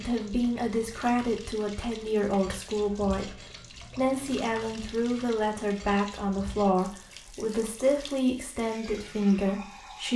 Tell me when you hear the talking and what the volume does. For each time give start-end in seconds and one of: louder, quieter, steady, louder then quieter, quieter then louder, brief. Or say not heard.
0.0-10.1 steady.